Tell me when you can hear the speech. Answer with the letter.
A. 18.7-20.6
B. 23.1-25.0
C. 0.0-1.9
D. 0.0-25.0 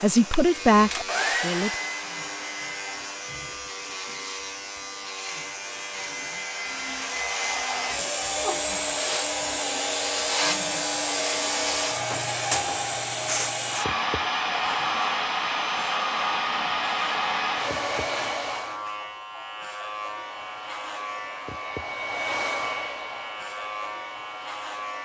C.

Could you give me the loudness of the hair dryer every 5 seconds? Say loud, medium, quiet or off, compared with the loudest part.
medium, loud, loud, loud, medium.